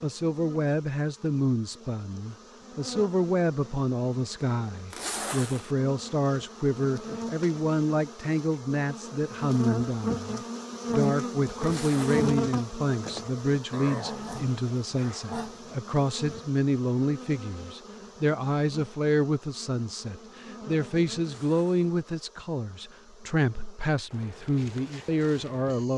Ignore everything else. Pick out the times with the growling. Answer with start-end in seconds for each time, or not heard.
13.7-15.8.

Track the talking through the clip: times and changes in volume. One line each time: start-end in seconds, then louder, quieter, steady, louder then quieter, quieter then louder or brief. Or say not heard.
0.0-25.9 steady.